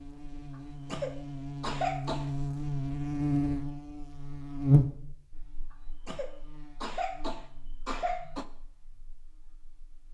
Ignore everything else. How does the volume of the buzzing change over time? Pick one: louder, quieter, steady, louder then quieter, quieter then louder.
louder then quieter.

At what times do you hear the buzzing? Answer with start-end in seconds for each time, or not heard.
0.0-10.0.